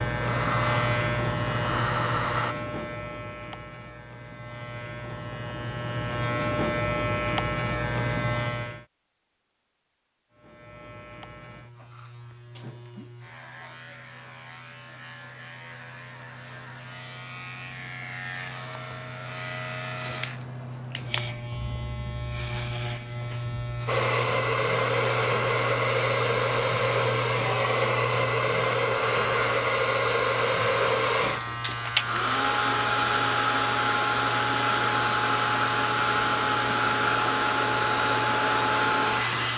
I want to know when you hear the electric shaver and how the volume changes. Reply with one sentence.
The electric shaver can be heard from 0.0 to 8.8 s, getting quieter then louder; and from 10.3 to 39.5 s, getting louder.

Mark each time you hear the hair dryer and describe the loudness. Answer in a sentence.
The hair dryer can be heard briefly from 0.2 to 2.5 s; and from 23.9 to 39.5 s, at a steady volume.